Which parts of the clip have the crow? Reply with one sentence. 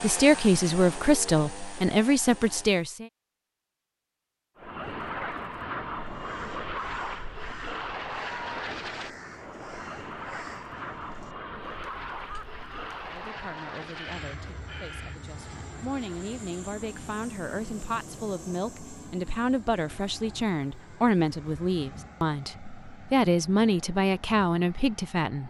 The crow can be heard from 6.0 to 15.2 s.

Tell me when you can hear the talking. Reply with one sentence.
You can hear the talking from 0.0 to 3.0 s and from 12.9 to 25.4 s.